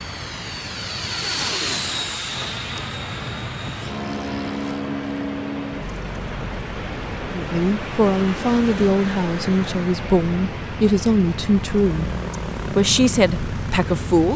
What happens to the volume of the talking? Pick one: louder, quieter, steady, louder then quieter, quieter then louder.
steady.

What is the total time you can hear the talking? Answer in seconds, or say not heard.
7 s.